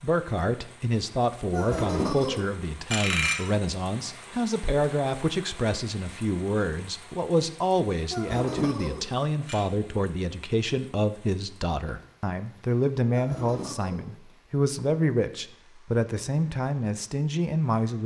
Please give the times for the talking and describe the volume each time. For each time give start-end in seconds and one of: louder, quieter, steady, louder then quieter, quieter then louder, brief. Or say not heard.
0.0-18.0 steady.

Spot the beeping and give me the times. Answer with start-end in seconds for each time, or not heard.
1.5-3.4, 8.1-9.7, 13.1-14.1.